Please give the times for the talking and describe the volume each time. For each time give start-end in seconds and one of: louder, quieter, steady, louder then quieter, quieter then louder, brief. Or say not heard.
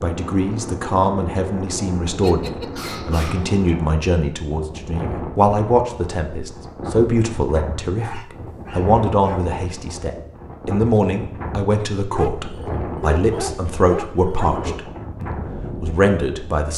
0.0-16.7 steady.